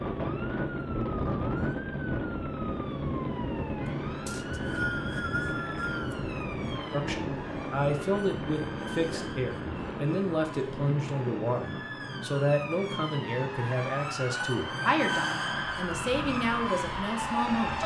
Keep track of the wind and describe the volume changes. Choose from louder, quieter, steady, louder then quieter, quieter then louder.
quieter.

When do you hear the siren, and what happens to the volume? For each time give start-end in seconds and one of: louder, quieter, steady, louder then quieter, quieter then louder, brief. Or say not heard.
0.0-17.8 louder.